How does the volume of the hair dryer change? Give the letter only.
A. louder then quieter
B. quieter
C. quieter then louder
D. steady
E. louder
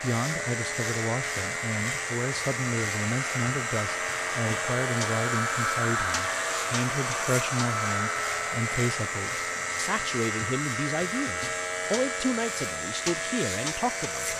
A.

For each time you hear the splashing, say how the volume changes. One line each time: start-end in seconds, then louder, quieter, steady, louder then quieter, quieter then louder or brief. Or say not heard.
not heard.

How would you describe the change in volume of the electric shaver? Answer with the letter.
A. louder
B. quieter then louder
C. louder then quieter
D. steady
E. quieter
D.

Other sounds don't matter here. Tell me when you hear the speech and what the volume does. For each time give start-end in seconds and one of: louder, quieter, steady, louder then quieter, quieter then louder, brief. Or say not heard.
0.0-14.3 steady.